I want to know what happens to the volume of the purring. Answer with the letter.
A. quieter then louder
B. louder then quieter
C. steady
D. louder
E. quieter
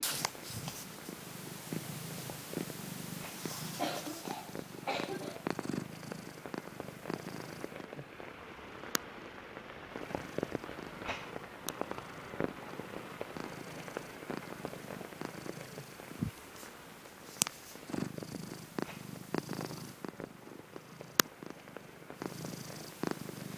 A.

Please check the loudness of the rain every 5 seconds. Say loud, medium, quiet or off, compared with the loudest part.
medium, medium, loud, medium, medium.